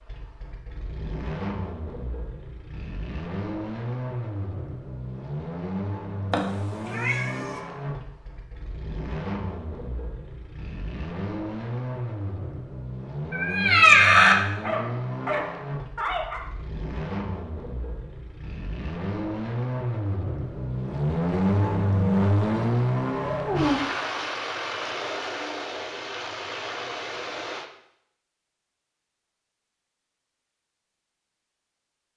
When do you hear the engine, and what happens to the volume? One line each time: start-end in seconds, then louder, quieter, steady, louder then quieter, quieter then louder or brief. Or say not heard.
0.0-27.7 louder.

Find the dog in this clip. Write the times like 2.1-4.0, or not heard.
14.6-16.4.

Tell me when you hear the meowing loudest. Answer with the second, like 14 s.
14 s.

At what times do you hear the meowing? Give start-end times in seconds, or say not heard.
6.3-7.5, 13.3-14.3, 23.2-23.8.